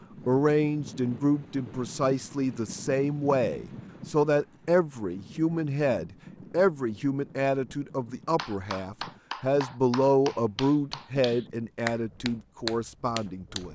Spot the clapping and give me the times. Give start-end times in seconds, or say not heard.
8.3-13.6.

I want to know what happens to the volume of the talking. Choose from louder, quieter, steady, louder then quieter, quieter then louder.
steady.